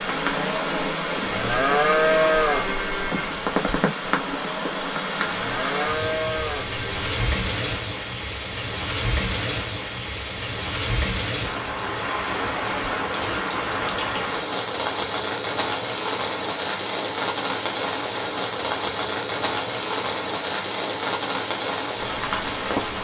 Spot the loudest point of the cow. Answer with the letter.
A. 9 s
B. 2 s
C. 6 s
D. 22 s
B.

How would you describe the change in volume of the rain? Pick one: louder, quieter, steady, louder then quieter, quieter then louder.
steady.